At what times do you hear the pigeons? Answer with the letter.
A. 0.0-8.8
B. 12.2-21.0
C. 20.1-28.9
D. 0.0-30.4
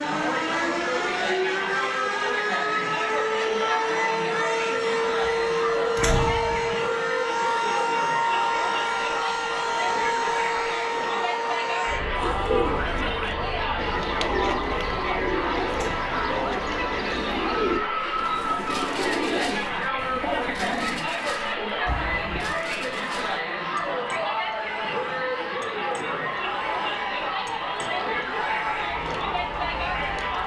B.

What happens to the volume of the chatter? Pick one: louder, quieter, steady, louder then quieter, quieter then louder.
steady.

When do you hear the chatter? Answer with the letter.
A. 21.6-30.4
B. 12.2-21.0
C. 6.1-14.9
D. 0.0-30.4
D.